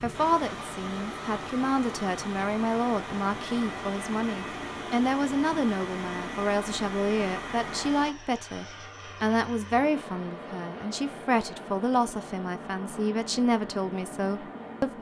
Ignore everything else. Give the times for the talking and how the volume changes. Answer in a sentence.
The talking can be heard from 0.0 to 14.9 s, at a steady volume.